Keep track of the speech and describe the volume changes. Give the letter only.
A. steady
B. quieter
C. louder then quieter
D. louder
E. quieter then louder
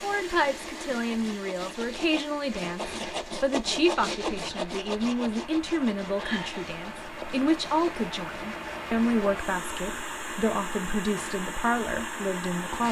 A.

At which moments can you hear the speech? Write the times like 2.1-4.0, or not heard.
0.0-12.8.